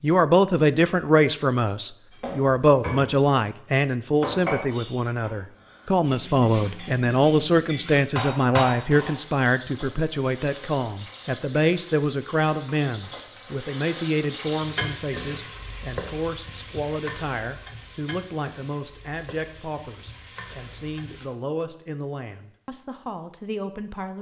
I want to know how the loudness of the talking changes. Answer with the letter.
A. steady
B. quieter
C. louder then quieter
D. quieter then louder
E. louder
B.